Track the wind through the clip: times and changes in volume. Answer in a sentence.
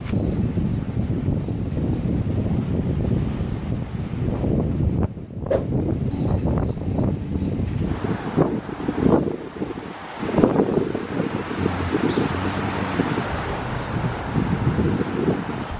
The wind can be heard from 0.0 to 15.7 s, at a steady volume.